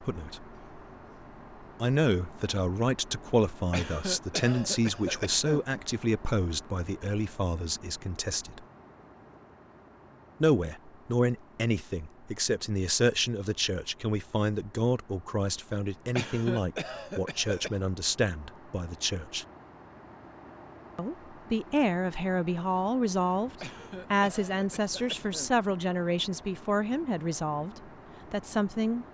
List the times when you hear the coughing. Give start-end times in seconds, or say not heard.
3.7-5.7, 16.1-17.7, 23.6-25.5.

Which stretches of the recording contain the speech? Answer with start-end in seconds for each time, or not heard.
0.0-0.6, 1.8-8.7, 10.4-19.4, 20.9-29.0.